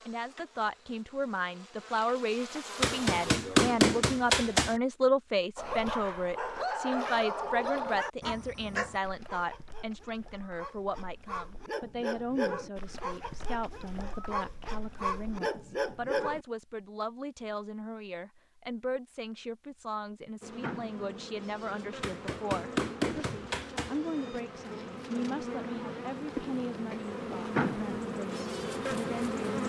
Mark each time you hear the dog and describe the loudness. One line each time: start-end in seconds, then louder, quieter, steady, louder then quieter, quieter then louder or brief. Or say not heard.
5.5-16.4 quieter then louder.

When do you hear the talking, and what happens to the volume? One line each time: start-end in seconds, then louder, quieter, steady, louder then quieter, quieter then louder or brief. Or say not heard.
0.1-29.6 quieter.